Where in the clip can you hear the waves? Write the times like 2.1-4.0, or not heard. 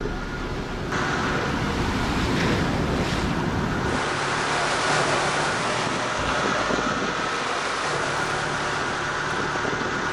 0.0-10.0.